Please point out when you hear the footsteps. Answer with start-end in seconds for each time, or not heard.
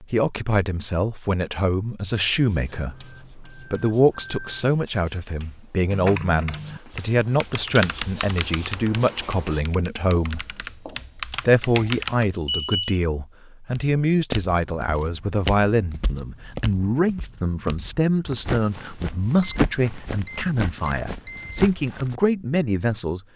13.7-22.2.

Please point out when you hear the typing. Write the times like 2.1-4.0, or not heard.
5.9-12.3.